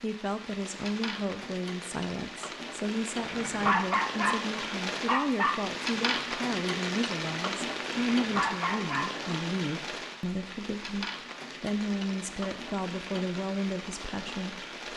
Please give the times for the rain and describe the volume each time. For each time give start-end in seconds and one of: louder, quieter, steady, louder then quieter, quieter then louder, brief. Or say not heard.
0.0-14.9 louder then quieter.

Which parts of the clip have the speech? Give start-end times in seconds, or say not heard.
0.0-14.7.